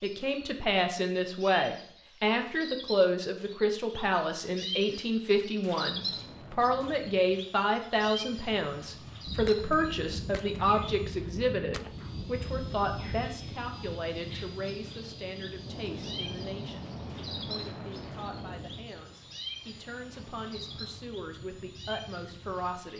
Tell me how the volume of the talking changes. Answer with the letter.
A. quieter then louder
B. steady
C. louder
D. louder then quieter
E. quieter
E.